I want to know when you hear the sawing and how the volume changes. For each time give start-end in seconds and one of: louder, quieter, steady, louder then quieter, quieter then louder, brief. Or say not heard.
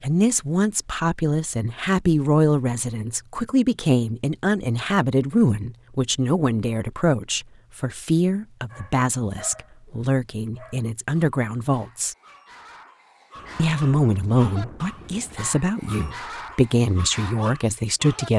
not heard.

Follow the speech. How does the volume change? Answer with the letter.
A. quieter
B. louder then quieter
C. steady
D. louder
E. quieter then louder
C.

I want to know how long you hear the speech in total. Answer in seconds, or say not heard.
17 s.